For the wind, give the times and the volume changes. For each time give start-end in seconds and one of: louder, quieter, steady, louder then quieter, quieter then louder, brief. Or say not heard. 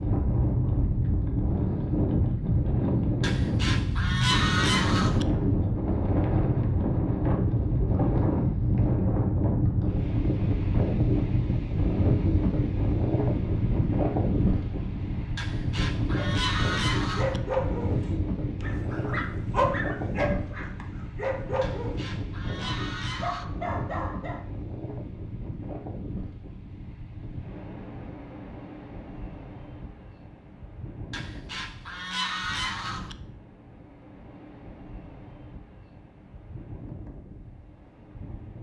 0.0-38.5 quieter.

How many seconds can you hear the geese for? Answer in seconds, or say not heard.
8 s.